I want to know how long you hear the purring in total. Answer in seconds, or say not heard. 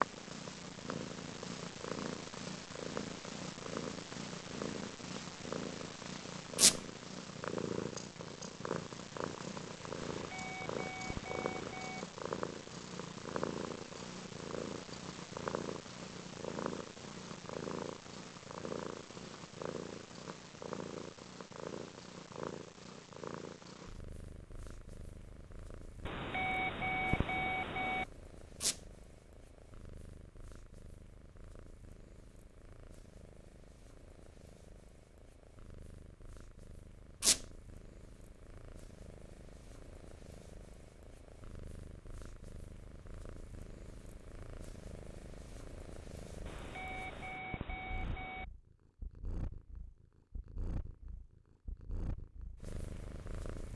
54 s.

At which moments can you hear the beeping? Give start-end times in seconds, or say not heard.
10.1-12.1, 26.1-28.1, 46.5-48.5.